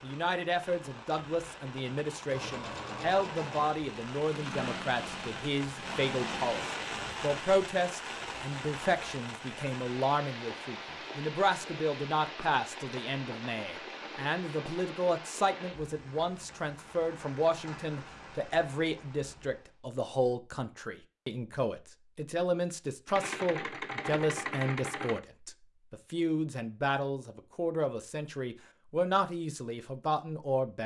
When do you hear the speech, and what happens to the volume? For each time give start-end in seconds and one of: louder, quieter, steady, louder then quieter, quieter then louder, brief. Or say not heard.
0.0-30.8 steady.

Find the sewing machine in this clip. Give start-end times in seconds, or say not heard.
2.2-6.4, 23.1-25.2.